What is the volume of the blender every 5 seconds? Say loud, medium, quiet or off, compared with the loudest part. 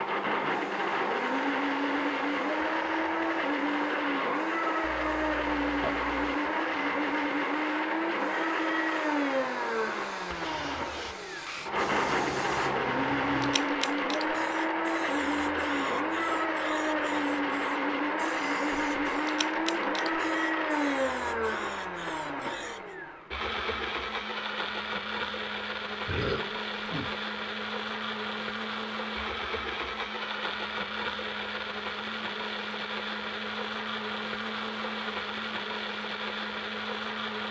loud, loud, loud, loud, loud, medium, medium, medium.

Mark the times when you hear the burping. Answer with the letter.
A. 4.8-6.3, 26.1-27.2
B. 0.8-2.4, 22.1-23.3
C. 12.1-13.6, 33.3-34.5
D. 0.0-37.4
A.